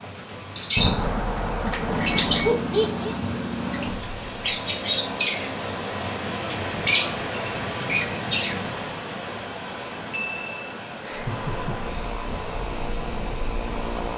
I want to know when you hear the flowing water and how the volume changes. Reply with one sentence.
You can hear the flowing water from 0.0 to 14.1 s, getting louder then quieter.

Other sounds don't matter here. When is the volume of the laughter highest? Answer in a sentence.
The loudest moment of the laughter is at 3 seconds.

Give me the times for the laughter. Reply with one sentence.
The laughter can be heard from 2.4 to 3.1 s and from 11.0 to 11.8 s.